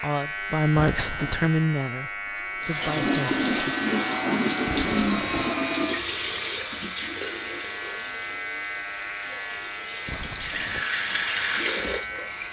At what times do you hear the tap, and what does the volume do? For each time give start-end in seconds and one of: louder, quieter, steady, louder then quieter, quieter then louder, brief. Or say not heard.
2.6-12.4 quieter then louder.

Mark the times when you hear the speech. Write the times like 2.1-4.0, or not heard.
0.0-3.5.